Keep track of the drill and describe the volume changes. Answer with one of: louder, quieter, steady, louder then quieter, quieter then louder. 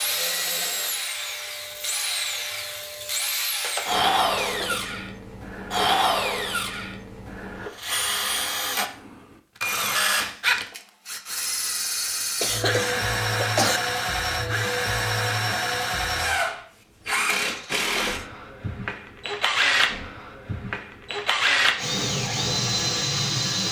steady.